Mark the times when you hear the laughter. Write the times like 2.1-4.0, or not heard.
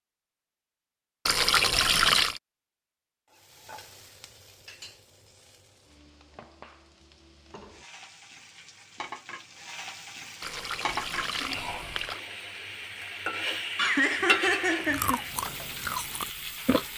13.8-15.3.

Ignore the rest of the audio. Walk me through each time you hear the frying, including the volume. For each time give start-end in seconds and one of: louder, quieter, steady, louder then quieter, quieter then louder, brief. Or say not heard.
3.3-16.9 louder.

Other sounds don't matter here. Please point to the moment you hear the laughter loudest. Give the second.
14 s.